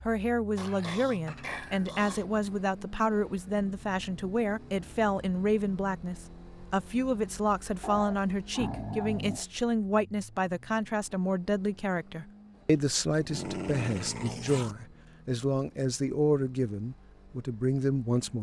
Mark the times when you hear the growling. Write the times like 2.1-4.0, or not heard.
0.6-2.2, 7.8-9.4, 12.7-14.8.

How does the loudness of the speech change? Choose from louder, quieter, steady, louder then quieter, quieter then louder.
steady.